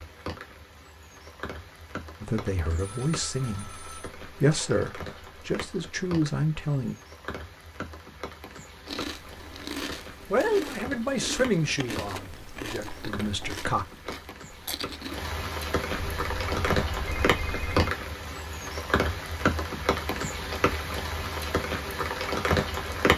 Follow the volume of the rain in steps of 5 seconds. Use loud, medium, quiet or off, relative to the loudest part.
quiet, quiet, quiet, loud, loud.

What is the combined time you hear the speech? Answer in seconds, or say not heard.
8 s.